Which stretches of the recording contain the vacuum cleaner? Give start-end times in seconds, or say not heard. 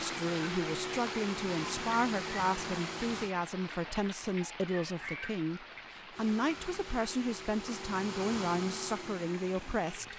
0.0-3.4, 6.1-10.1.